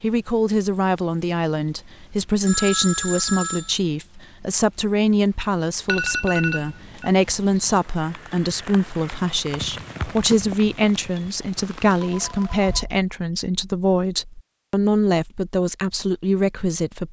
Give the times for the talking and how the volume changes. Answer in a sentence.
You can hear the talking from 0.0 to 17.0 s, at a steady volume.